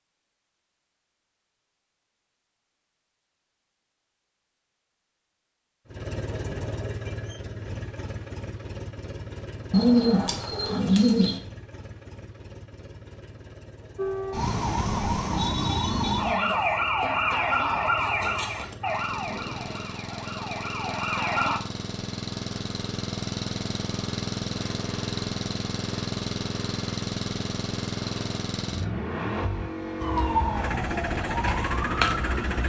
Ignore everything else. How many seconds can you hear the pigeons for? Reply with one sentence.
You can hear the pigeons for 2 seconds altogether.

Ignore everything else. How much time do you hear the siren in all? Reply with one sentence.
You can hear the siren for 10 seconds altogether.